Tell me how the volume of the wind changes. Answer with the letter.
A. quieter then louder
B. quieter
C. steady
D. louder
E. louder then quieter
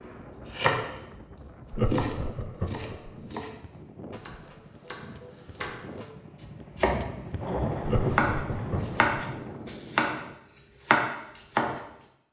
D.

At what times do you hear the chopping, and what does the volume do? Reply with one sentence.
You can hear the chopping from 0.5 to 8.3 s, getting quieter then louder; briefly from 8.9 to 10.2 s; and briefly from 10.8 to 11.8 s.